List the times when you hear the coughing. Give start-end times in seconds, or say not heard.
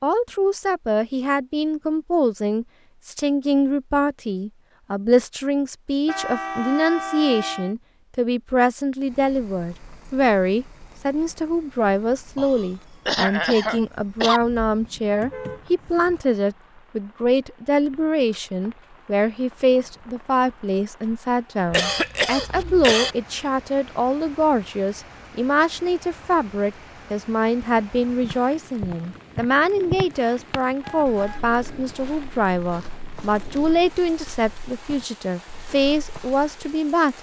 12.3-14.4, 21.7-23.1.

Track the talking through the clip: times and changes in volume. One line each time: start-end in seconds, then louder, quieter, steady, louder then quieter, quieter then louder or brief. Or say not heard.
0.0-37.1 steady.